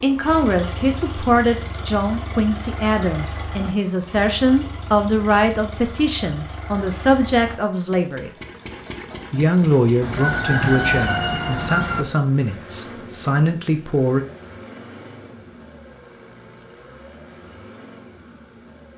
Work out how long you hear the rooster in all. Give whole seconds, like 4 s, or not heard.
2 s.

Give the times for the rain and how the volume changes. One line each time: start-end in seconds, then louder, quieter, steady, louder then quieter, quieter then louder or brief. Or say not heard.
not heard.